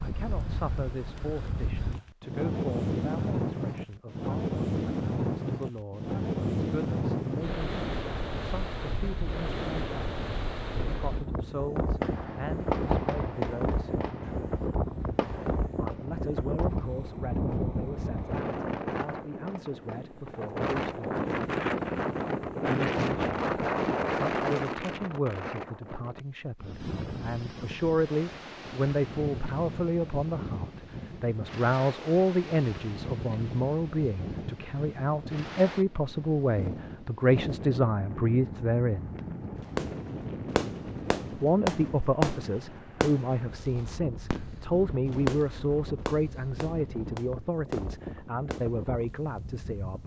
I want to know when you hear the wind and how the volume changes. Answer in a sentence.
You can hear the wind from 0.0 to 50.0 s, getting quieter.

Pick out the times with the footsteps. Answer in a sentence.
The footsteps can't be heard in this clip.